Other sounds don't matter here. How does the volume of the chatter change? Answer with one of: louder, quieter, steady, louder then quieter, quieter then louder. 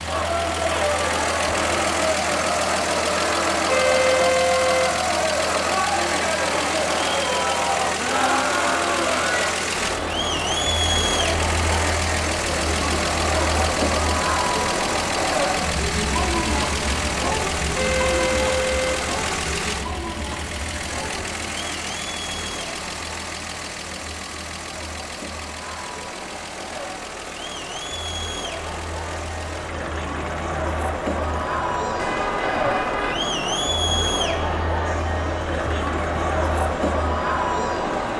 quieter then louder.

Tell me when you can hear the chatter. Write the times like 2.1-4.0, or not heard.
0.0-38.1.